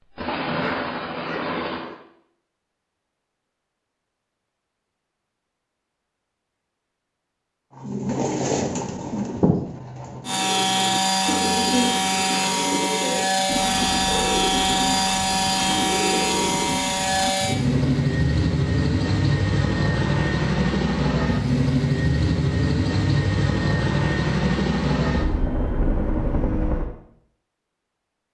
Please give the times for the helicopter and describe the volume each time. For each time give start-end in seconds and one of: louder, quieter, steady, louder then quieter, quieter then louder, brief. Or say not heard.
0.0-1.9 brief
10.2-26.9 steady.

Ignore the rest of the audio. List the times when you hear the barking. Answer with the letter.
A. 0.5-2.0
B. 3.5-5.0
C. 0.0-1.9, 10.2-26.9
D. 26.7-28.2
A.